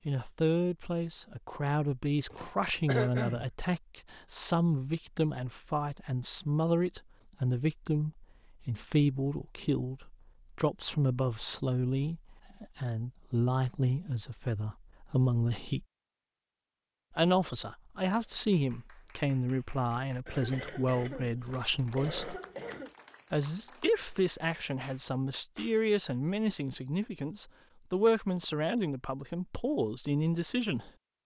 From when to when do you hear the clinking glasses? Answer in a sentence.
The clinking glasses can't be heard in this clip.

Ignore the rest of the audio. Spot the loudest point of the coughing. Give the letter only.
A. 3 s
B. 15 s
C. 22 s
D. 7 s
A.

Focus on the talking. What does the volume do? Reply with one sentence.
The volume of the talking stays about the same.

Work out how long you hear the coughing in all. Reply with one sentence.
You can hear the coughing for 4 seconds altogether.